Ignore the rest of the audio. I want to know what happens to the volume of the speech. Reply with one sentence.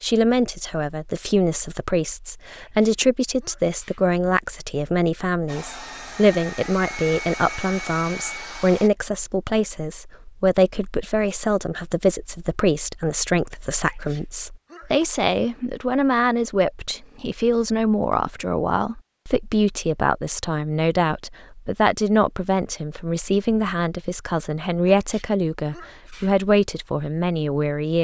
The volume of the speech stays about the same.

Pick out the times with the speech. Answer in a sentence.
You can hear the speech from 0.0 to 27.9 s.